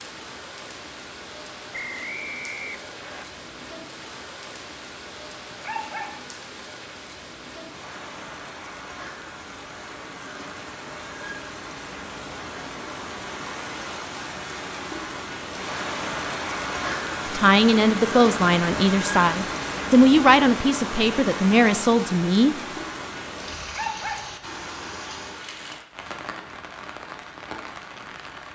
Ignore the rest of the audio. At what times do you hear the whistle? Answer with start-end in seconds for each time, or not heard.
1.7-3.2.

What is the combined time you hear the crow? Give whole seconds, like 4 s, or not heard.
not heard.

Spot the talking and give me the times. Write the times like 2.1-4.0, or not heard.
17.3-22.6.